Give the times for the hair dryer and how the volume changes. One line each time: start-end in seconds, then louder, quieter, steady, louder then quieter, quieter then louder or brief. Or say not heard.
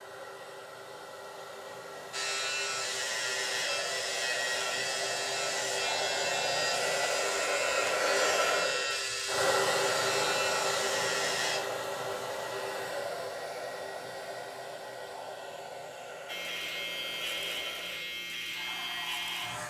0.0-19.6 louder then quieter.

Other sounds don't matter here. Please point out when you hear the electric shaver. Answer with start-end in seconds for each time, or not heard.
2.1-11.6, 16.2-19.6.